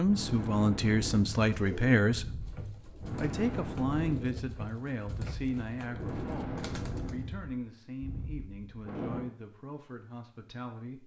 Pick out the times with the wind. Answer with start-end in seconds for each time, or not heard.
0.0-9.2.